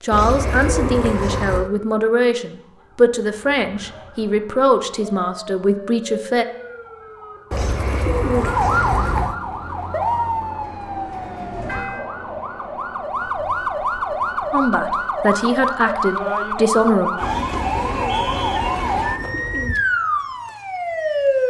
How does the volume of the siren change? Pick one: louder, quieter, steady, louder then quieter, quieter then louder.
louder.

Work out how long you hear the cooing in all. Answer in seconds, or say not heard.
6 s.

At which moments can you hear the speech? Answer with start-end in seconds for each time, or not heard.
0.0-6.5, 14.5-17.1.